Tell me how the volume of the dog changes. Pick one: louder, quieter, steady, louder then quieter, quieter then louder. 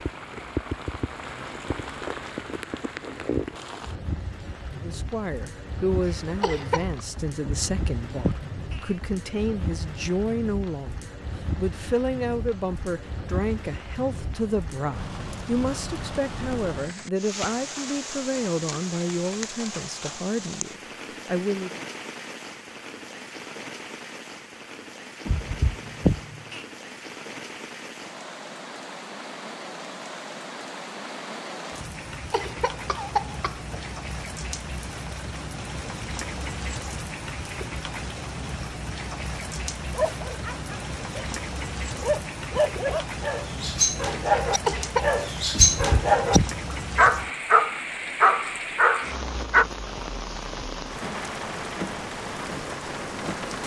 louder.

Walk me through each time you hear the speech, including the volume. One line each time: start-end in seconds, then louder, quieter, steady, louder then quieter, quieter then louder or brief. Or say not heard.
4.8-21.9 steady.